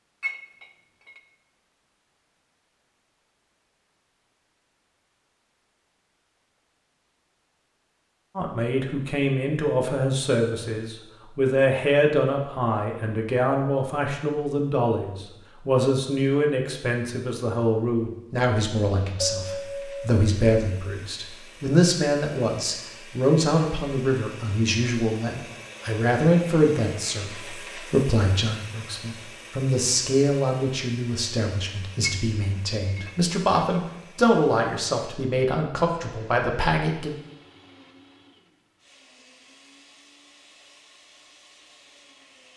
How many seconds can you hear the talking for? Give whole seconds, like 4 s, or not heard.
29 s.